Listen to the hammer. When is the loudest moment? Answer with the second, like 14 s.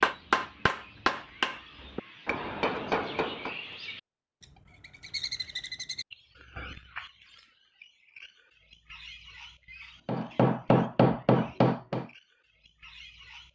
11 s.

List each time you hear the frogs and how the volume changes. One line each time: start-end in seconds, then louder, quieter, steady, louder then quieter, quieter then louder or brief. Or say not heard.
not heard.